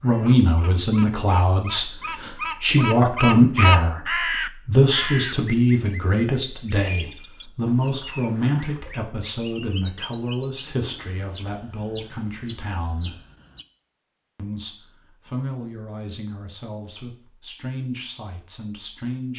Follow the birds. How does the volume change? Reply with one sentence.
The loudness of the birds goes up, then down.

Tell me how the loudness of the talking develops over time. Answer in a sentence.
The volume of the talking goes down.